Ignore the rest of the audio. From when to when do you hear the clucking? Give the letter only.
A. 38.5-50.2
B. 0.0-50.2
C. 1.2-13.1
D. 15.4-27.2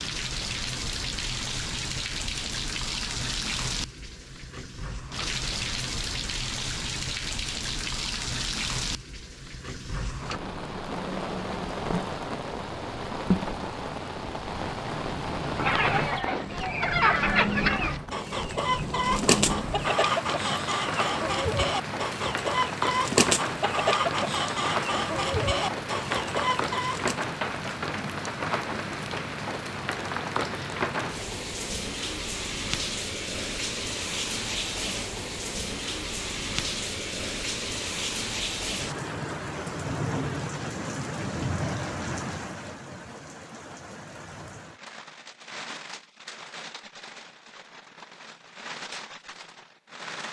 D.